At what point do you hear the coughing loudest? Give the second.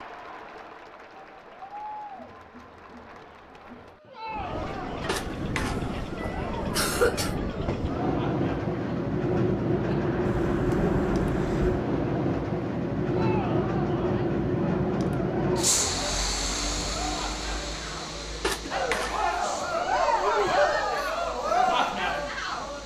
7 s.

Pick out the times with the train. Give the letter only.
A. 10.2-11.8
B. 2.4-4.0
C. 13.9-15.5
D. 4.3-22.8
D.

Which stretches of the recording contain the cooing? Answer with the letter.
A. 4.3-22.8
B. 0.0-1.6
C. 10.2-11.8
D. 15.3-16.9
C.